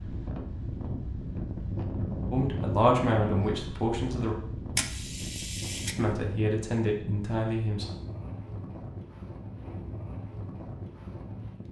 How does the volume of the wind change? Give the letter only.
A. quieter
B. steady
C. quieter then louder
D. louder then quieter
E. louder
A.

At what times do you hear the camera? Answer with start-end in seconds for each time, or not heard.
4.8-6.0.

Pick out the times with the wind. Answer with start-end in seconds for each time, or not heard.
0.0-11.6.